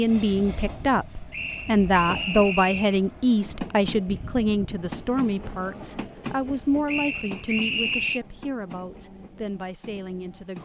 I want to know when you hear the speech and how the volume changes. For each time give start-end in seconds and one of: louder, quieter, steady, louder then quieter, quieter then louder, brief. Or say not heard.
0.0-10.5 quieter.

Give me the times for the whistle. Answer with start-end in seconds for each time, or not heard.
1.3-3.0, 6.8-8.2.